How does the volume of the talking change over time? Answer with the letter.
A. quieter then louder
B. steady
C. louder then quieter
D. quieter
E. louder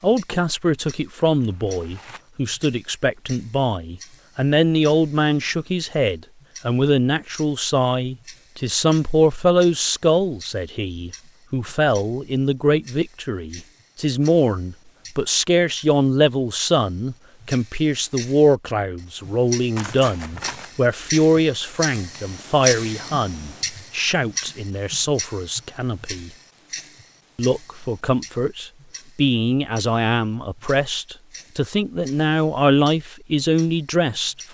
B.